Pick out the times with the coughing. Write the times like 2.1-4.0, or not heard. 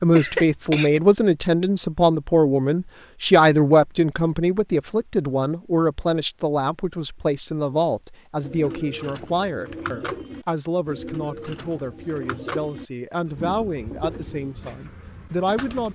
0.1-1.0.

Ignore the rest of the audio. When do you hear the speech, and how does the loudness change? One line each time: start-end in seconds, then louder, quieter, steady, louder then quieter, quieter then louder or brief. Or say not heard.
0.0-15.9 quieter.